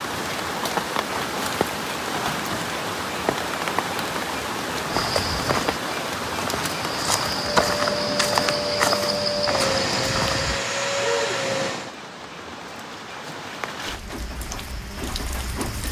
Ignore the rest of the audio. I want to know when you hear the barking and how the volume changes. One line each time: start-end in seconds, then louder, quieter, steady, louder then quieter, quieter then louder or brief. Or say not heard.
not heard.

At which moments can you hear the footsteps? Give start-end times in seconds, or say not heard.
4.9-10.6.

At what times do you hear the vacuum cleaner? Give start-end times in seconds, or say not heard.
7.3-11.9.